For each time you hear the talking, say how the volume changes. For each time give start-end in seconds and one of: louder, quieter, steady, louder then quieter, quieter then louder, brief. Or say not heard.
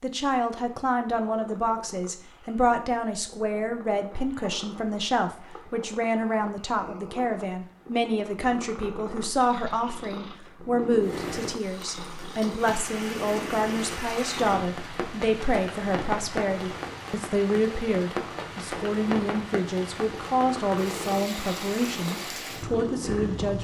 0.0-23.5 steady.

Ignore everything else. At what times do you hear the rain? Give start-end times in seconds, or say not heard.
11.0-23.5.